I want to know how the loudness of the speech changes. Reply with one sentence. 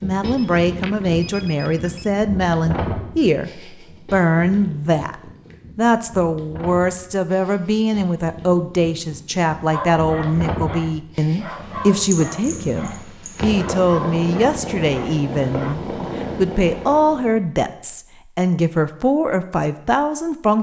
The loudness of the speech stays about the same.